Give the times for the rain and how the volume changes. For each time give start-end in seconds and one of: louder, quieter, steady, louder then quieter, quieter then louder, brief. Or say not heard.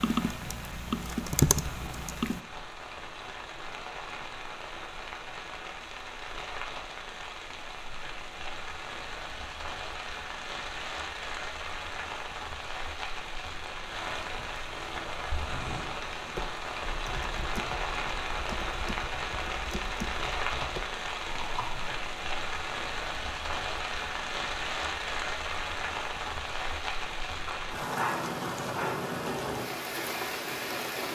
0.0-31.0 louder.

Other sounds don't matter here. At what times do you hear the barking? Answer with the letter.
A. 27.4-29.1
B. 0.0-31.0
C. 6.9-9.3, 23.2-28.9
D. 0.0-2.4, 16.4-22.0
A.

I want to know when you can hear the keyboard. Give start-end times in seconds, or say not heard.
0.0-2.4, 16.4-22.0.